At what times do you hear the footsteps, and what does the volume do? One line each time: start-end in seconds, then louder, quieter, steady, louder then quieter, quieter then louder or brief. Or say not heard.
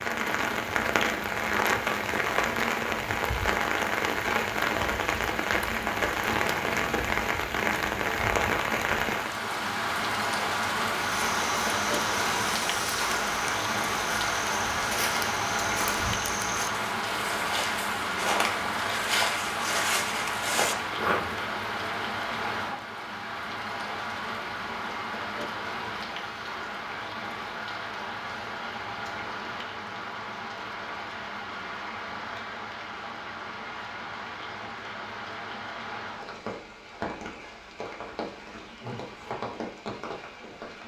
10.9-21.5 louder.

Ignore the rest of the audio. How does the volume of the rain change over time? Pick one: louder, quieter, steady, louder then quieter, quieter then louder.
quieter.